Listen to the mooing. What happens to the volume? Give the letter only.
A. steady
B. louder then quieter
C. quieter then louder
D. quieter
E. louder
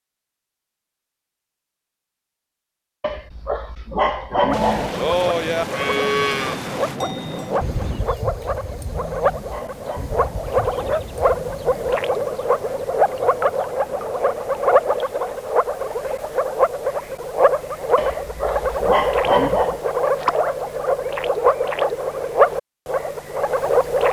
D.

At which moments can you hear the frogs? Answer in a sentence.
You can hear the frogs from 4.5 to 24.0 s.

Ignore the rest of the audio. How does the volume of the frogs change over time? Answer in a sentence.
The volume of the frogs goes up.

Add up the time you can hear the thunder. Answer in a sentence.
The thunder can be heard for 4 seconds in total.